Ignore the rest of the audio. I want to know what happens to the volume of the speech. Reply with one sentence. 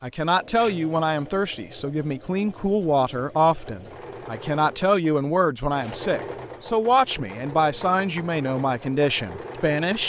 The volume of the speech stays about the same.